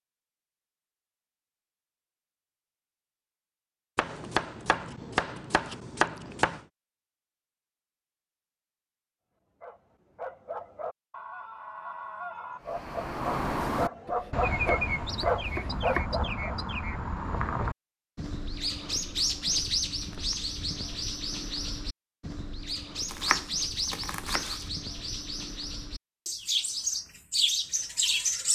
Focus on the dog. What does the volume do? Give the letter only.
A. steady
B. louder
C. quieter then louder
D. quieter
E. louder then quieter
B.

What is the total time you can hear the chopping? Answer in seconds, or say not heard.
6 s.